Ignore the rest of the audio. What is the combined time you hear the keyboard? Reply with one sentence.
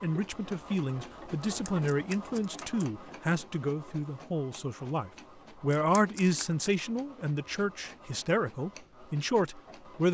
You can't hear the keyboard here.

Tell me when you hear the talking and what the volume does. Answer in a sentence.
The talking can be heard from 0.0 to 10.0 s, at a steady volume.